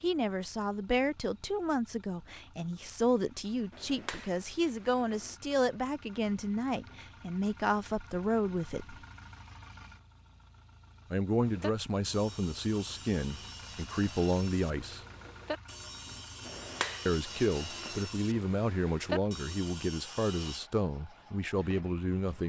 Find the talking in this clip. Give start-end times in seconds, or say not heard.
0.0-8.9, 11.1-15.0, 17.1-22.4.